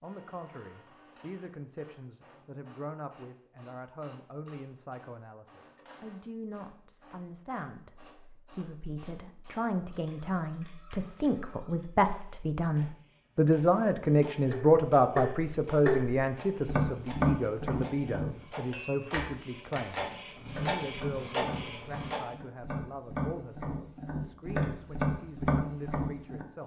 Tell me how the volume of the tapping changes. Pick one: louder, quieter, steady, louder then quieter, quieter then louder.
quieter then louder.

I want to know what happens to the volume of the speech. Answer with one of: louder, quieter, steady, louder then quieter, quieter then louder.
louder then quieter.